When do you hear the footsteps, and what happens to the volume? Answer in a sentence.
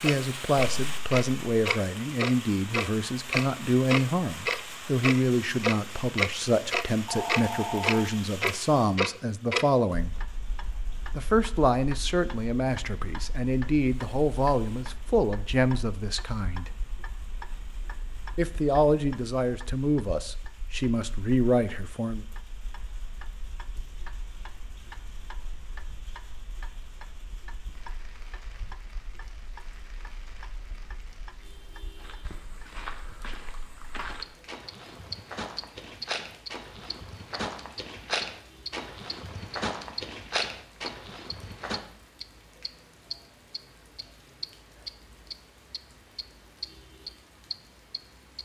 You can hear the footsteps from 31.9 to 41.8 s, getting louder.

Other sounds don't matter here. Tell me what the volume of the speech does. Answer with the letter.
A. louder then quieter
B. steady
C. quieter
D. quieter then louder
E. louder
B.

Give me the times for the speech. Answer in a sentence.
The speech can be heard from 0.0 to 10.2 s, from 11.2 to 16.8 s and from 18.4 to 22.2 s.